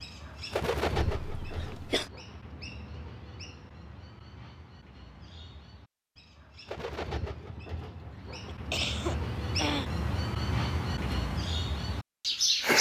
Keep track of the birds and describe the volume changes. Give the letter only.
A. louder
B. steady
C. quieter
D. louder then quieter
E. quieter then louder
E.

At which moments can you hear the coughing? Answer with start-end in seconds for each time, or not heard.
1.2-2.1, 8.4-9.9.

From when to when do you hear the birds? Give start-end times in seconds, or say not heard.
0.0-12.7.